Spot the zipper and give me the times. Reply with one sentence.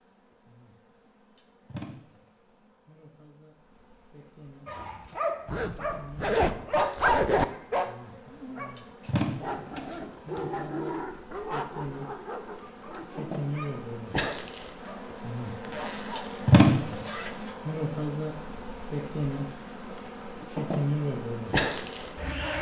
The zipper can be heard from 5.5 to 7.5 s and from 15.6 to 17.6 s.